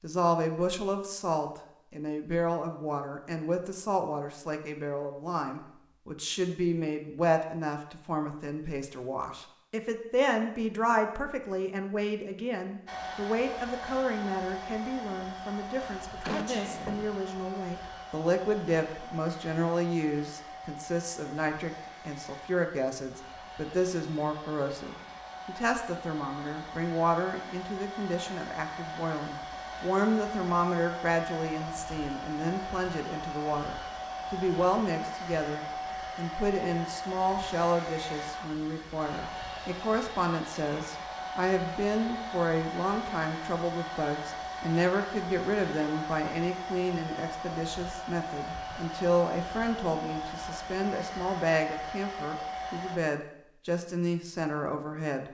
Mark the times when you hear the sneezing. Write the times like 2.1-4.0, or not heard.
15.7-17.1.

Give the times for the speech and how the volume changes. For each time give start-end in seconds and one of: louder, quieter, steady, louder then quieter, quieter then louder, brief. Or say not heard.
0.0-55.2 steady.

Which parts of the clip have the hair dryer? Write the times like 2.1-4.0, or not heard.
12.8-53.0.